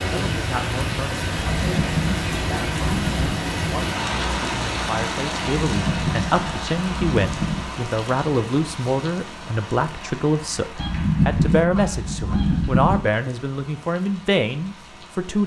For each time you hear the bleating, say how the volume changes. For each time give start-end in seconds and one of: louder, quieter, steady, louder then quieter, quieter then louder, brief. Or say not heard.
not heard.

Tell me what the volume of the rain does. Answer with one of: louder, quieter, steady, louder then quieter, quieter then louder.
quieter.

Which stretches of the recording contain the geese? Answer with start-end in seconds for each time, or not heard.
1.4-3.4, 5.6-7.7, 10.8-13.0.